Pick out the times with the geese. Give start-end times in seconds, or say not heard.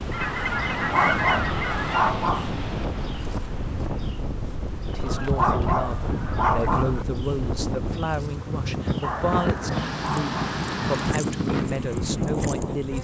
0.1-2.1, 5.0-7.0, 9.0-11.2.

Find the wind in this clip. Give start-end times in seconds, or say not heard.
0.0-12.9.